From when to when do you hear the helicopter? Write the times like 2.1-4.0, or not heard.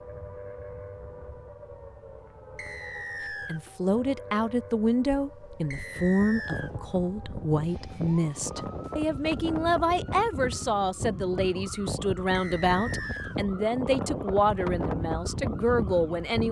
not heard.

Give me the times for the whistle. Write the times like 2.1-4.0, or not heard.
2.5-3.6, 5.7-6.7, 12.3-13.3.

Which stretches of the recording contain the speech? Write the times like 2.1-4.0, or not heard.
3.5-16.4.